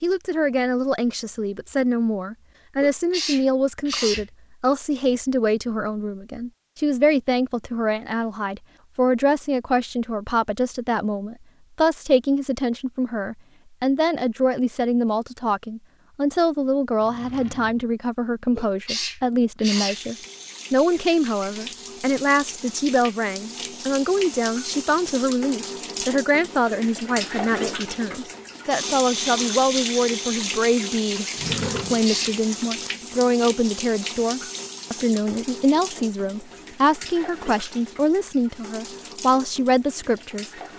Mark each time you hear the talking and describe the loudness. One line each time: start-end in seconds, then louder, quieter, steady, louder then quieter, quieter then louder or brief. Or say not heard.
0.0-40.5 steady.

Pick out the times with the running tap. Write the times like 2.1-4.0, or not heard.
19.8-40.7.